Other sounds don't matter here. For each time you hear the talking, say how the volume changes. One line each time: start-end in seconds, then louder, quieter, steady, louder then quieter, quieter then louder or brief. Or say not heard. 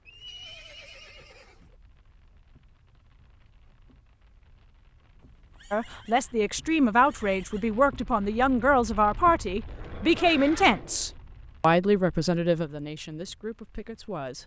5.7-14.4 quieter.